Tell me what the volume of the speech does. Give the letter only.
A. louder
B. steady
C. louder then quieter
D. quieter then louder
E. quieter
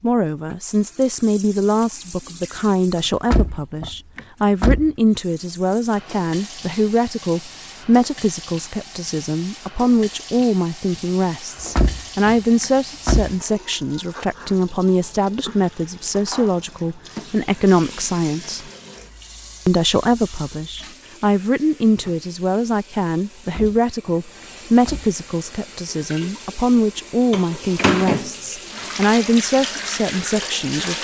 B.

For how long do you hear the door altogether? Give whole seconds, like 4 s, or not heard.
5 s.